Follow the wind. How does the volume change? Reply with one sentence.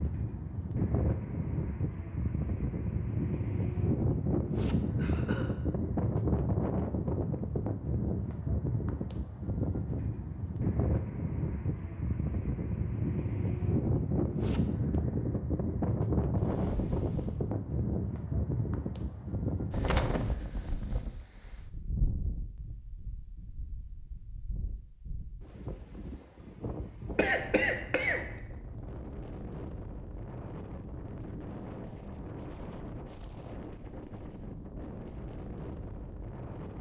The volume of the wind goes down.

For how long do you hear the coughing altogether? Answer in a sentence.
You can hear the coughing for 2 seconds altogether.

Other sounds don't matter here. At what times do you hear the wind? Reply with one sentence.
The wind can be heard from 0.0 to 36.7 s.